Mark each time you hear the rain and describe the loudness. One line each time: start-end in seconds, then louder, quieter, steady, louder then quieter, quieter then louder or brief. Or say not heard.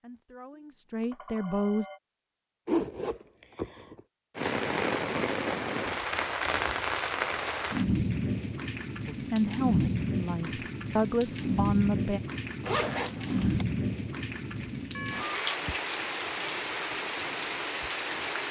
4.3-18.4 steady.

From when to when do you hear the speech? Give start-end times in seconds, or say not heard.
0.0-1.9, 9.1-12.2.